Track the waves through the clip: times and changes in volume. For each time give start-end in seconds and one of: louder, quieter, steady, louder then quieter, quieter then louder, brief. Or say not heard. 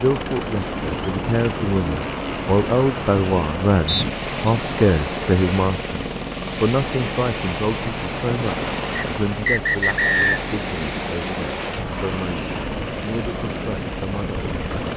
0.0-14.9 steady.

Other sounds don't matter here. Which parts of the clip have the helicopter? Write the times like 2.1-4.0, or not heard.
0.0-14.9.